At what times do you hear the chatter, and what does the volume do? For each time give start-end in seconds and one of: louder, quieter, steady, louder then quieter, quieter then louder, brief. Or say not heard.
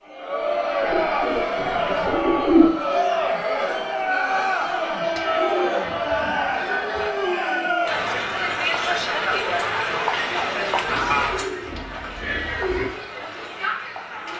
0.1-14.3 quieter.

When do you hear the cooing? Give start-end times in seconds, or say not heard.
0.8-2.7, 5.0-7.0, 10.8-12.9.